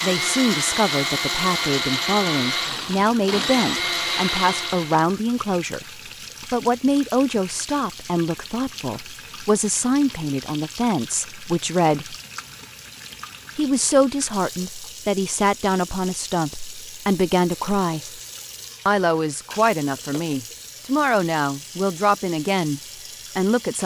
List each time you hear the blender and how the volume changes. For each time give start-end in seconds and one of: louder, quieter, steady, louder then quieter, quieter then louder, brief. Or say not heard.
0.0-5.0 steady.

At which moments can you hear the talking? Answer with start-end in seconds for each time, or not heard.
0.0-5.8, 6.5-12.2, 13.6-18.2, 18.9-23.8.